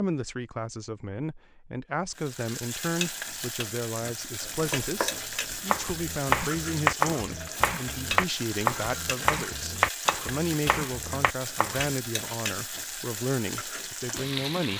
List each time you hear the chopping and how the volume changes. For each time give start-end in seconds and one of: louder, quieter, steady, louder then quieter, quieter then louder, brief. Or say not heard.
4.5-11.9 louder then quieter.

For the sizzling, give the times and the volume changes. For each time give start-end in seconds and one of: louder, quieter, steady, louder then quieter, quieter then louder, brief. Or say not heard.
2.1-14.7 steady.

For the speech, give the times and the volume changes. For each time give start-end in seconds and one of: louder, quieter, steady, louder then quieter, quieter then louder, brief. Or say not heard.
0.0-14.7 steady.